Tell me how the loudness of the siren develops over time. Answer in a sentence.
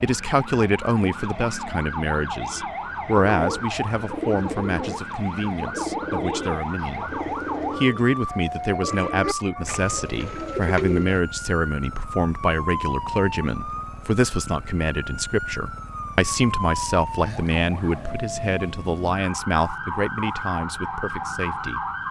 The loudness of the siren stays about the same.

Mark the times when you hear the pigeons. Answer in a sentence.
You can hear the pigeons from 3.2 to 11.2 s.